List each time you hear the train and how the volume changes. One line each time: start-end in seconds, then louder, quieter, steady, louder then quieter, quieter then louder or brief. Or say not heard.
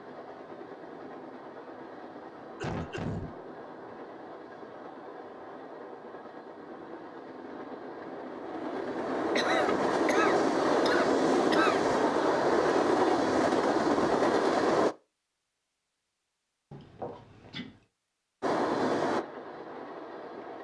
0.0-14.9 louder
18.4-20.5 brief.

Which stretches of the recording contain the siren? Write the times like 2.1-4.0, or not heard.
not heard.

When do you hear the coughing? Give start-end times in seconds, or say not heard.
2.6-3.3, 9.3-11.9, 16.7-17.8.